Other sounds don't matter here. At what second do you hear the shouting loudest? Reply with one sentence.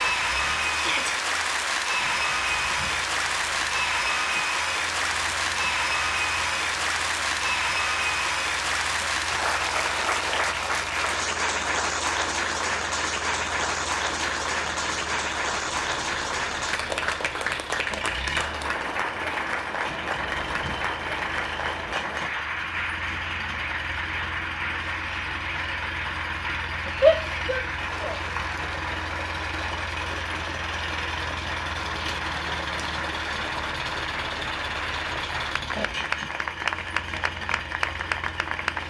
The volume of the shouting peaks at 27 seconds.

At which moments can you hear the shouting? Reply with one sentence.
The shouting can be heard from 0.7 to 1.1 s and from 27.0 to 28.1 s.